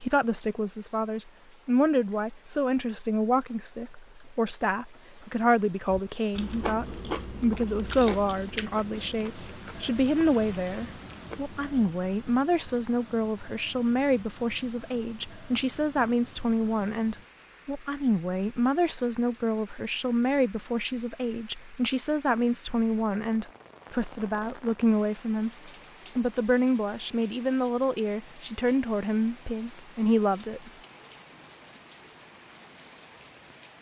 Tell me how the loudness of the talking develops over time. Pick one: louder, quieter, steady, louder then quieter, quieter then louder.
steady.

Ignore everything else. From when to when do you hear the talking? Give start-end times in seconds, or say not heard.
0.0-30.7.